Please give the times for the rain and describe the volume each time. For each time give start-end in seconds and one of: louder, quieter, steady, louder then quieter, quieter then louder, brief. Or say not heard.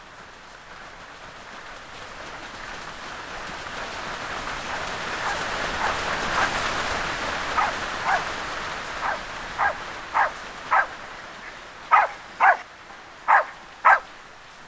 0.0-14.6 louder then quieter.